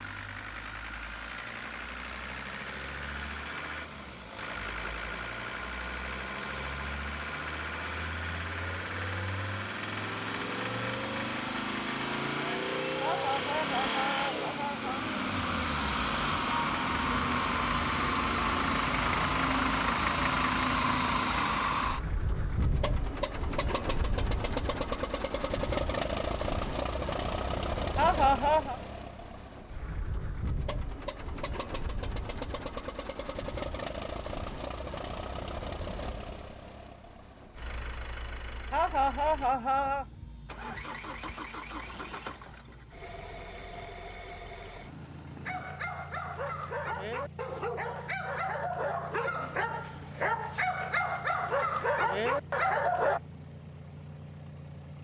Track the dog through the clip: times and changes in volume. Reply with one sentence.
The dog can be heard from 45.5 to 53.2 s, getting louder.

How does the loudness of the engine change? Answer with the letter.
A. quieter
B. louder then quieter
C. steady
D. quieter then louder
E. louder
B.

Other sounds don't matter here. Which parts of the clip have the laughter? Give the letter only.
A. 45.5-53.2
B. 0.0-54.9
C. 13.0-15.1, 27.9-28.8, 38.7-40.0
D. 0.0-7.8
C.